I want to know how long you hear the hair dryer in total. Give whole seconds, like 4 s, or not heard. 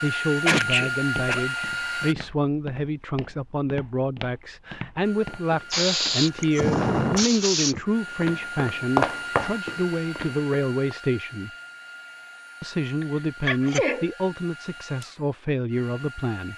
14 s.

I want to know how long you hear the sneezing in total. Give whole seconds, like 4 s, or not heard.
4 s.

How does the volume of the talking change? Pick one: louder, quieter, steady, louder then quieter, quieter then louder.
steady.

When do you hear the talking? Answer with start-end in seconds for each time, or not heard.
0.0-11.5, 12.6-16.5.